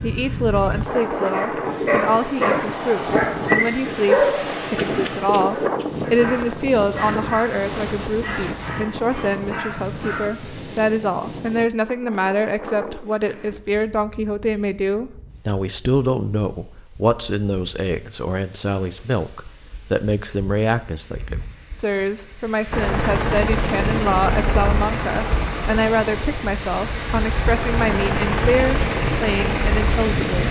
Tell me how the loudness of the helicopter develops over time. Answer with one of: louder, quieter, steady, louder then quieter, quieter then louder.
quieter then louder.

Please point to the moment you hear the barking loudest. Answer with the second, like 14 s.
4 s.